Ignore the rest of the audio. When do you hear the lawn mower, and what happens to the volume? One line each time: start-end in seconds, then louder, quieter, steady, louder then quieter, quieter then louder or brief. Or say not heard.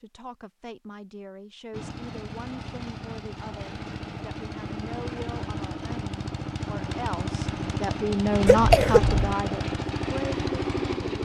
1.7-11.2 louder.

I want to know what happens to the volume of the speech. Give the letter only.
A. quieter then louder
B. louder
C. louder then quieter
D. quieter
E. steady
B.